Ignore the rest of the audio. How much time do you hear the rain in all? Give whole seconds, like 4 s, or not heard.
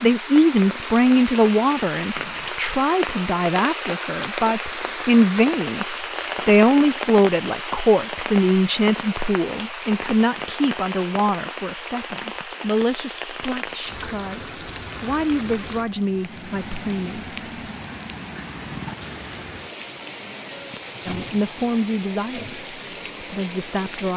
24 s.